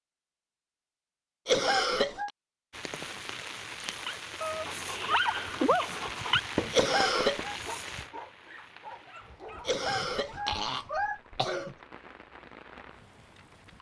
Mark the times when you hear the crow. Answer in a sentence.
You can't hear the crow here.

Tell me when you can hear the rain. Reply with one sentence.
The rain can be heard from 2.7 to 13.7 s.